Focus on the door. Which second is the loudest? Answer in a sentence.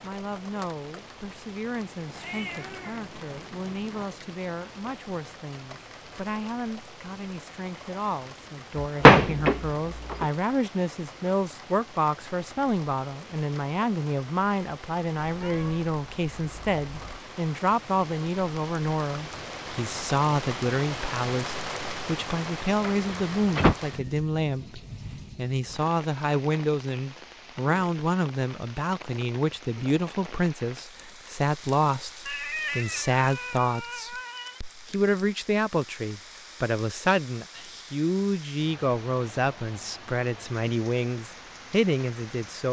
The loudest moment of the door is at 9 seconds.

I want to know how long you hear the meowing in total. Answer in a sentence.
You can hear the meowing for 6 seconds altogether.